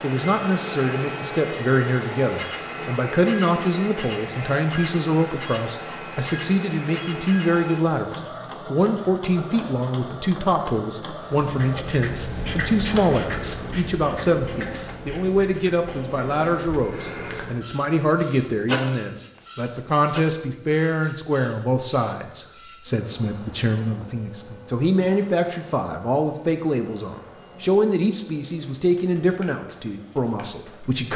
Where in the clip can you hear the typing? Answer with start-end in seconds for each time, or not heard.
not heard.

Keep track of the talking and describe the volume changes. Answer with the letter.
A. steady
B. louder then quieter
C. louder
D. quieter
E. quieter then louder
A.